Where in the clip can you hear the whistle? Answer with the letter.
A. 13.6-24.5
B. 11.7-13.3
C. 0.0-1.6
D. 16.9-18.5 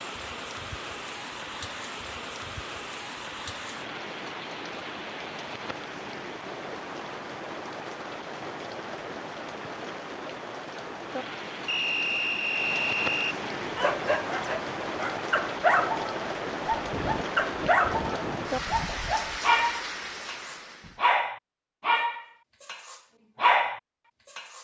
B.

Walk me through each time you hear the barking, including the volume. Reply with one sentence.
You can hear the barking from 13.6 to 24.5 s, at a steady volume.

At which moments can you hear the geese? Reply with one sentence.
The geese can be heard from 16.9 to 18.5 s.